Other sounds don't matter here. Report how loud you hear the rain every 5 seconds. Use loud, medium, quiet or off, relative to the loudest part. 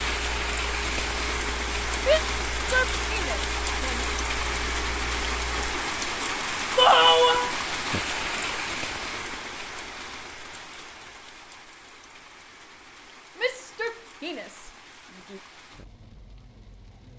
loud, loud, quiet, quiet.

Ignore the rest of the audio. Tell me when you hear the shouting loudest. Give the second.
7 s.